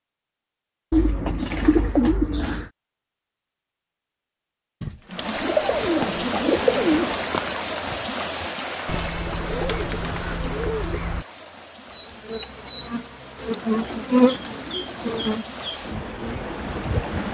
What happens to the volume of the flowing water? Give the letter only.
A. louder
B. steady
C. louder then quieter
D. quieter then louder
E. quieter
D.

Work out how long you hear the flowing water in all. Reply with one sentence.
You can hear the flowing water for 12 seconds altogether.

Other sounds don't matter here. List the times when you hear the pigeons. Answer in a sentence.
You can hear the pigeons from 0.9 to 2.7 s, from 4.8 to 7.1 s, from 8.8 to 11.2 s and from 13.3 to 15.4 s.